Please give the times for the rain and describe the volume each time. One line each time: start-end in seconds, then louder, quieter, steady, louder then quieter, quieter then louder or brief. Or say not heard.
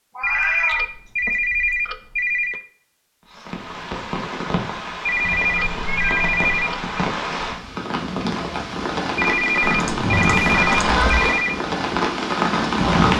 3.2-13.1 louder.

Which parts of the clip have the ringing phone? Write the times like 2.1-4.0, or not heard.
0.2-2.6, 5.0-6.8, 9.2-11.6.